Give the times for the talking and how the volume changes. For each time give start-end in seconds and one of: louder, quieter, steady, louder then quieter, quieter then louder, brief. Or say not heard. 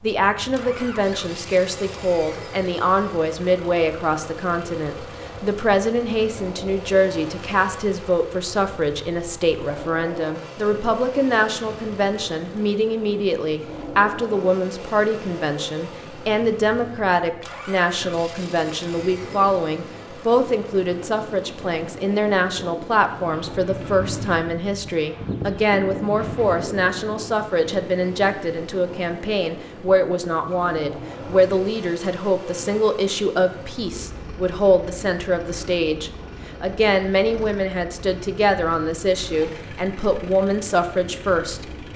0.0-41.9 steady.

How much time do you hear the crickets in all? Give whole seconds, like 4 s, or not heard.
not heard.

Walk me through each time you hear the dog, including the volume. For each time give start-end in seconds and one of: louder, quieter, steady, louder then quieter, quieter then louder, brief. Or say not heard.
not heard.